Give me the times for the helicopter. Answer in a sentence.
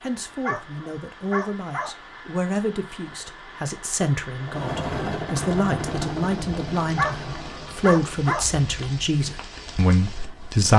You can hear the helicopter from 4.4 to 10.7 s.